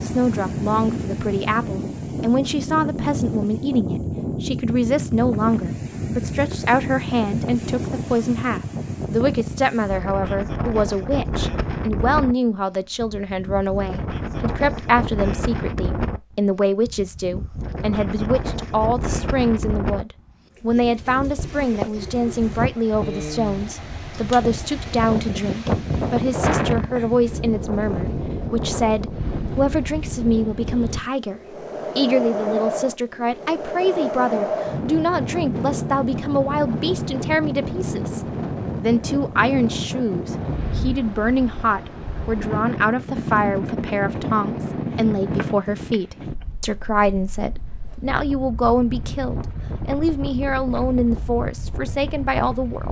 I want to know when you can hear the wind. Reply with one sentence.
The wind can be heard from 0.0 to 52.8 s.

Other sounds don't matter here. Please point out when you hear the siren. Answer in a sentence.
You can't hear the siren here.